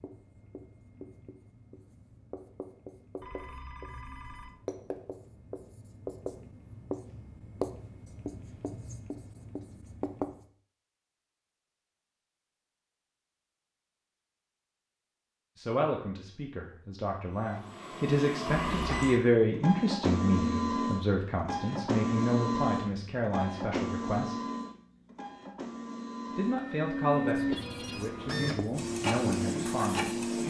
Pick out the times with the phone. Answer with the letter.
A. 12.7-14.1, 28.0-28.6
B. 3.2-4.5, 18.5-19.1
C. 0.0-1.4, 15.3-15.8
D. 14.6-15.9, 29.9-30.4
B.